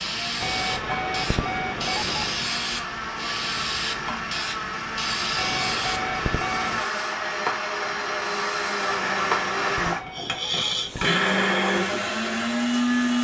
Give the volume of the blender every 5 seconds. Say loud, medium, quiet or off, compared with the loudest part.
medium, loud, loud.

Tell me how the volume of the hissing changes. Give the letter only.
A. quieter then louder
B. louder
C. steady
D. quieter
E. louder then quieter
C.